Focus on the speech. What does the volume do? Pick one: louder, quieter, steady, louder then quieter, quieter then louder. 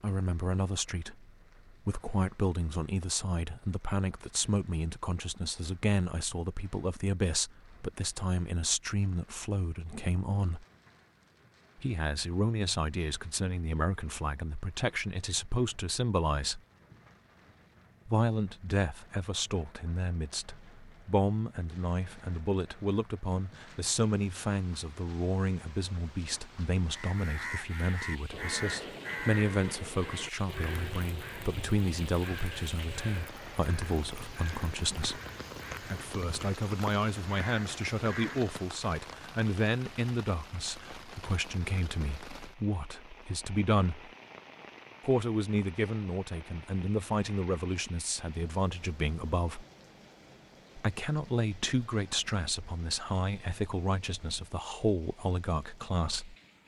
steady.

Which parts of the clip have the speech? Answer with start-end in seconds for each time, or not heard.
0.0-10.7, 11.8-16.6, 18.1-35.2, 35.8-44.1, 45.0-49.6, 50.8-56.4.